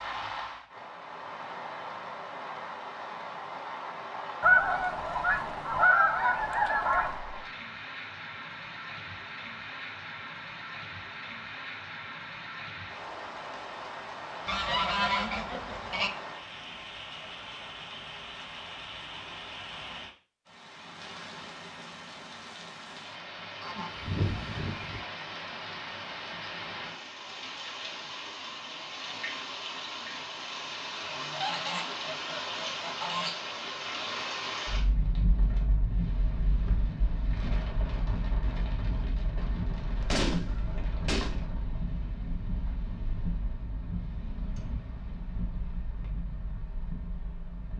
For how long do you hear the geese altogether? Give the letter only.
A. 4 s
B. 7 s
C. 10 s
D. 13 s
C.